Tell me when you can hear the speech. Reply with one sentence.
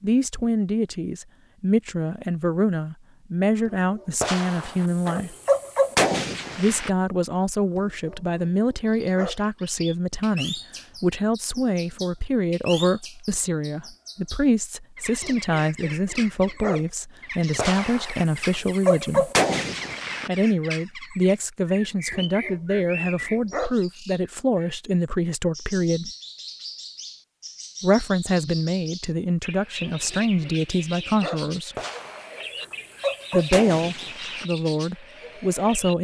You can hear the speech from 0.0 to 5.3 s, from 6.5 to 19.3 s, from 20.2 to 26.1 s, from 27.8 to 31.8 s and from 33.3 to 35.9 s.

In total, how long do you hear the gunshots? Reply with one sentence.
You can hear the gunshots for 8 seconds altogether.